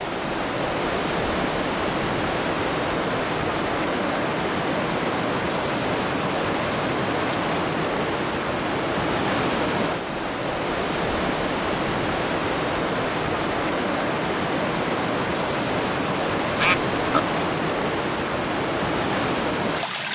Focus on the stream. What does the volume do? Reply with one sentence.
The loudness of the stream stays about the same.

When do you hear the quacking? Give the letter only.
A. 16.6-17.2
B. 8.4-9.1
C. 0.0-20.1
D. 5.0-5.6
A.